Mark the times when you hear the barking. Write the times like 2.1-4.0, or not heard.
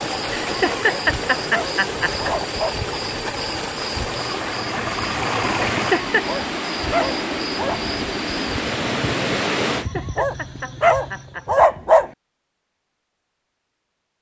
0.8-2.8, 6.2-7.8, 10.2-12.1.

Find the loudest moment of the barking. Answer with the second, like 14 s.
12 s.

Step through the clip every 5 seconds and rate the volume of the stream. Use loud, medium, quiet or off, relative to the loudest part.
loud, loud, off.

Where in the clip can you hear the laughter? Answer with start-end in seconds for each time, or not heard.
0.3-2.5, 5.7-6.2, 9.7-11.7.